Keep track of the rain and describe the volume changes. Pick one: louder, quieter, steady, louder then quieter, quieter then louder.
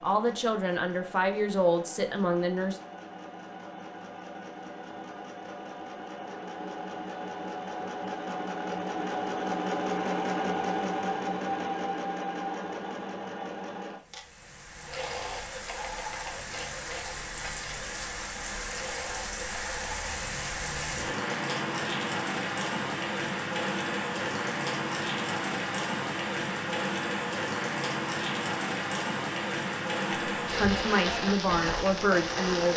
louder.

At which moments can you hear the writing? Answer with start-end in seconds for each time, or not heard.
not heard.